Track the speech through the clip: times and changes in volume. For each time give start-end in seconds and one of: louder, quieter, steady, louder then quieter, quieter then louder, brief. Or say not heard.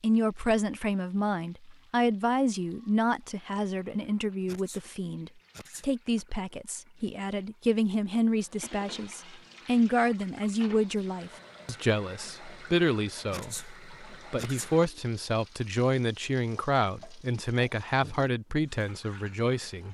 0.0-19.8 steady.